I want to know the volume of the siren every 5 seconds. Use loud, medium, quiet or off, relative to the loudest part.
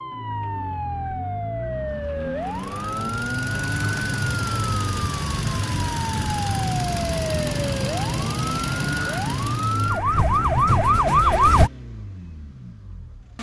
medium, medium, loud.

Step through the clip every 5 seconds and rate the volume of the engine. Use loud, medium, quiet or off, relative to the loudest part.
loud, loud, quiet.